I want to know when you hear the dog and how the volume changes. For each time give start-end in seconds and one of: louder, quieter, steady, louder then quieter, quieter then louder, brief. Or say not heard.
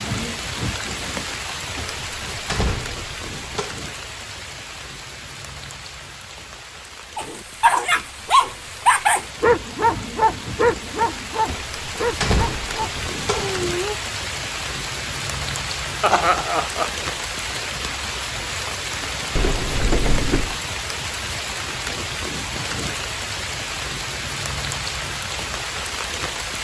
7.2-13.9 quieter.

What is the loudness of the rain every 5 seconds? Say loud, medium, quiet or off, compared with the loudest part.
loud, medium, loud, loud, loud, loud.